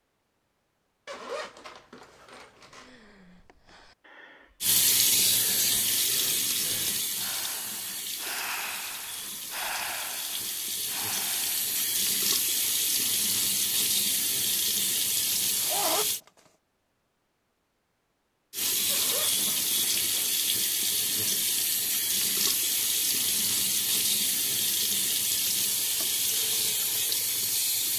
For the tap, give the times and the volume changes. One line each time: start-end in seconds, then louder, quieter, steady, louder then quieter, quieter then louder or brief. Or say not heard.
4.6-16.2 quieter then louder
18.5-27.9 steady.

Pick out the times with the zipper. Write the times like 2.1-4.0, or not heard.
1.1-2.9, 15.1-16.3, 18.9-20.4.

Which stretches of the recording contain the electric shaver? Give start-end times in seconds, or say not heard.
not heard.